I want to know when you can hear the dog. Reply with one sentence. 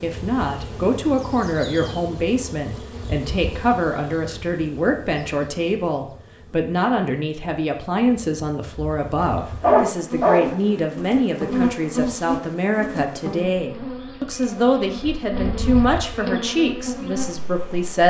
The dog can be heard from 9.2 to 10.6 s.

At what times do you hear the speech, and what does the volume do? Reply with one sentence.
The speech can be heard from 0.0 to 18.0 s, at a steady volume.